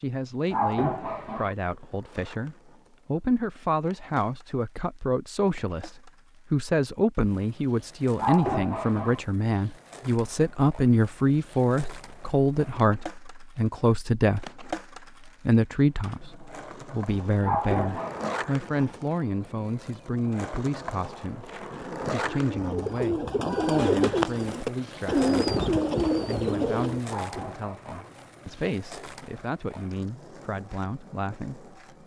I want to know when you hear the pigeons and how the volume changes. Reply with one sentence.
The pigeons can be heard from 21.6 to 27.0 s, getting louder.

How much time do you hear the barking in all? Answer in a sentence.
The barking can be heard for 4 seconds in total.